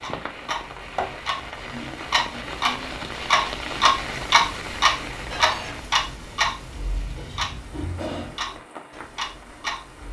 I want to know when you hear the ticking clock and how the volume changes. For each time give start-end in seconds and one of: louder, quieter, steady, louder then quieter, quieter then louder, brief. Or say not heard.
0.0-10.0 louder then quieter.